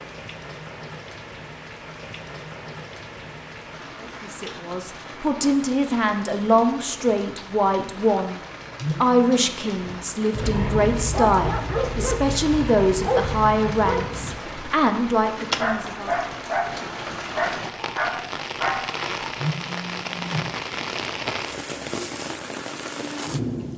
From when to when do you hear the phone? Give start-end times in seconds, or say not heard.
8.8-9.3, 19.4-20.4.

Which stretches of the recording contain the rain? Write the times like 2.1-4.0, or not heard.
0.0-23.7.